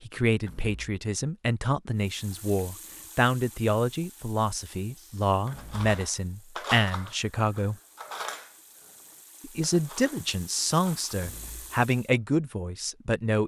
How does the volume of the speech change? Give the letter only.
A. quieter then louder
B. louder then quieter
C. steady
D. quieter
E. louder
C.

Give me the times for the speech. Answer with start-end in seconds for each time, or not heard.
0.1-7.8, 9.4-13.4.